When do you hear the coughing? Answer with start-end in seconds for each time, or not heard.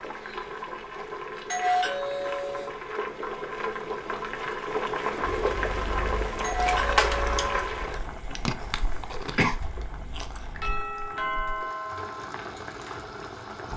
8.7-9.6.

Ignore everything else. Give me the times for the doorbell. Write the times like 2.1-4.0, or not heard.
1.4-2.7, 6.4-7.7, 10.6-12.3.